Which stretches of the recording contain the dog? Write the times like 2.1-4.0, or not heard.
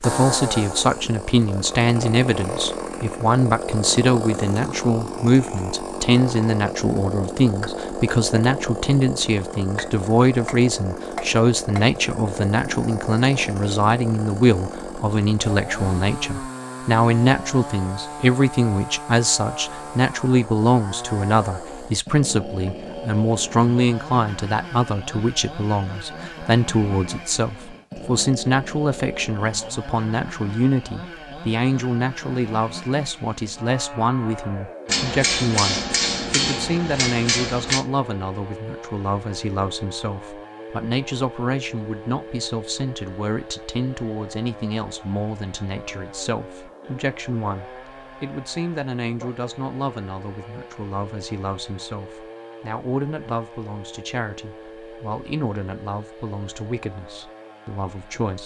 not heard.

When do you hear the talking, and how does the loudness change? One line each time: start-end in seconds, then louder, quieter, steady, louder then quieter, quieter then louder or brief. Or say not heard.
0.0-58.4 quieter.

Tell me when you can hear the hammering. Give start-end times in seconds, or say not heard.
34.9-37.9.